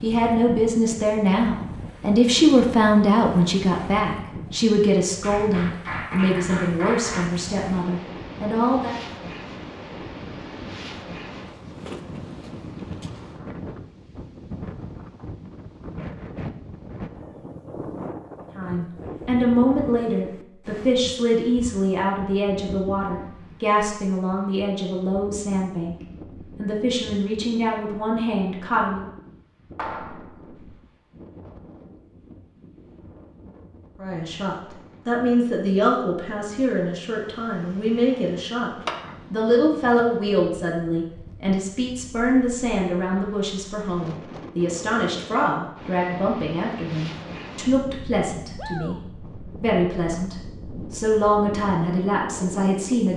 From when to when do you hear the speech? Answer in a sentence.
The speech can be heard from 0.0 to 8.9 s, from 18.6 to 25.9 s, from 26.6 to 29.0 s and from 34.0 to 53.1 s.